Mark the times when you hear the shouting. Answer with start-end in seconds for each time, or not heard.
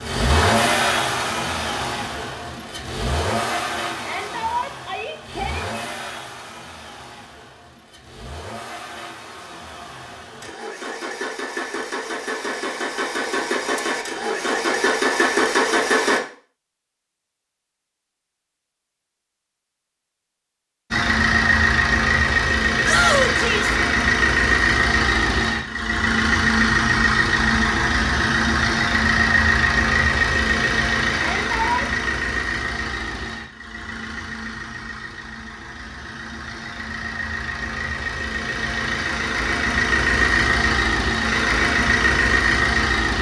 4.0-5.7, 22.8-23.8, 31.1-31.9.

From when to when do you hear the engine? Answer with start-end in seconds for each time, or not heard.
0.0-16.2, 20.9-43.1.